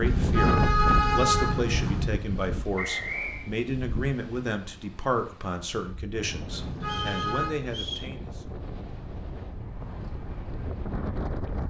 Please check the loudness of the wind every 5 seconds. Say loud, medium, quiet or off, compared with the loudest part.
loud, medium, loud.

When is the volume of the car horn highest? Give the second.
1 s.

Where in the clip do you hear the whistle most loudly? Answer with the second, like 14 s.
3 s.